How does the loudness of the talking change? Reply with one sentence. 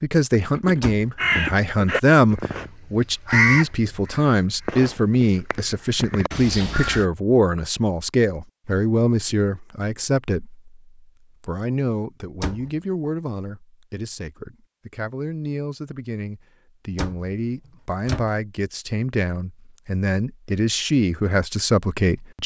The volume of the talking goes down, then up.